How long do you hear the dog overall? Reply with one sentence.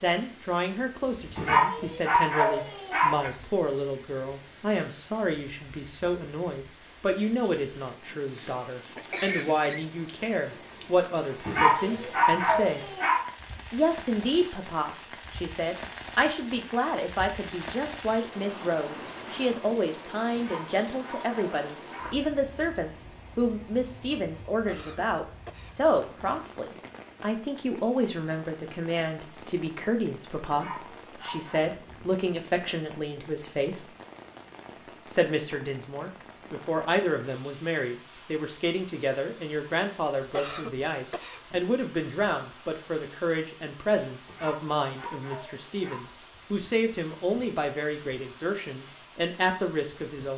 You can hear the dog for 9 seconds altogether.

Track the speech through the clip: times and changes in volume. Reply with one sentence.
You can hear the speech from 0.0 to 12.8 s, at a steady volume; from 13.7 to 33.9 s, at a steady volume; and from 35.1 to 50.3 s, at a steady volume.